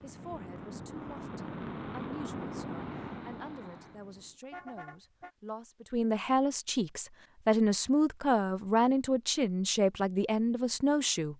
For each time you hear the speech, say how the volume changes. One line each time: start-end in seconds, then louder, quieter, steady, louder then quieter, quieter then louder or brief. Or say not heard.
0.0-11.3 louder.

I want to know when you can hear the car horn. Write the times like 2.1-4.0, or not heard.
4.4-5.3.